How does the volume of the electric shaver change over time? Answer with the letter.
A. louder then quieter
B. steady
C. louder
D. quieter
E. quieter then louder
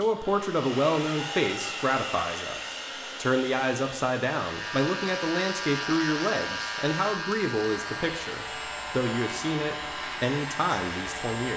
D.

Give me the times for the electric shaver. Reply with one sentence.
The electric shaver can be heard from 4.3 to 11.5 s.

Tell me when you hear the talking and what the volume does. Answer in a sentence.
You can hear the talking from 0.0 to 11.5 s, at a steady volume.